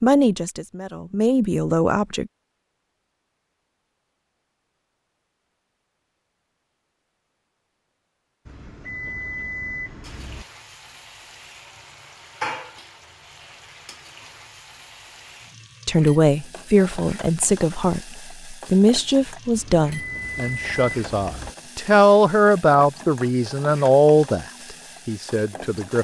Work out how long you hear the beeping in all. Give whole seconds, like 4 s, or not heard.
4 s.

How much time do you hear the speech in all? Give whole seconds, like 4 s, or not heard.
12 s.